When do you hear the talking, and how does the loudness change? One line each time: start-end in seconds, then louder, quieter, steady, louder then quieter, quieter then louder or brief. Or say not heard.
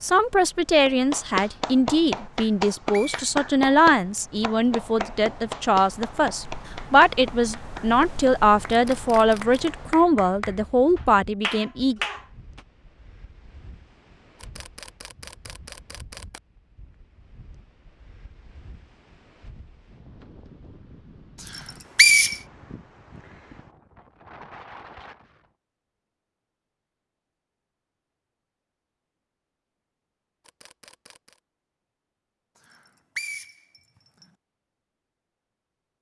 0.0-12.0 steady.